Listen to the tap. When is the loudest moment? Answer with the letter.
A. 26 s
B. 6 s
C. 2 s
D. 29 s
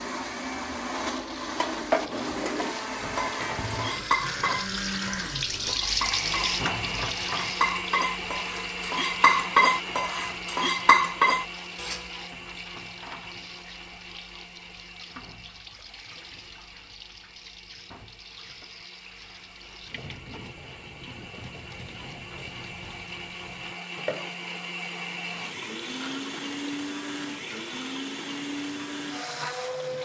B.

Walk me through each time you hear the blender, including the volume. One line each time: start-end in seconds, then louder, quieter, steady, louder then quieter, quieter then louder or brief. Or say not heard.
0.0-29.9 quieter then louder.